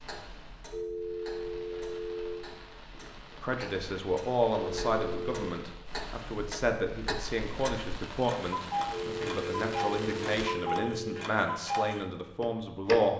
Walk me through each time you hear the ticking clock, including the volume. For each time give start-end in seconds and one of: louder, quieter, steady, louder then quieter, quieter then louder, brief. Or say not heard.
0.0-13.0 louder.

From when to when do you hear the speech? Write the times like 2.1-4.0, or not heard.
3.4-13.1.